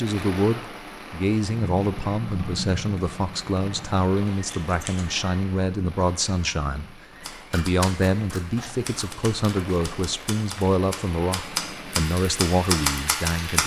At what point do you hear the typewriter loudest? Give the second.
13 s.